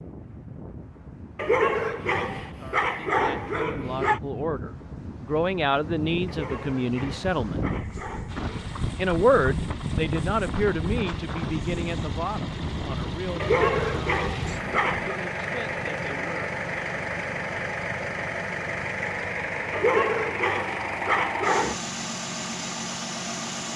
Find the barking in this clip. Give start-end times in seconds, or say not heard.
1.4-4.2, 6.2-8.7, 13.4-15.2, 19.7-21.8.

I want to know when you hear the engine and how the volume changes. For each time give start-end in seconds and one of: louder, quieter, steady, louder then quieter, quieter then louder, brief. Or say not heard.
8.2-23.7 louder.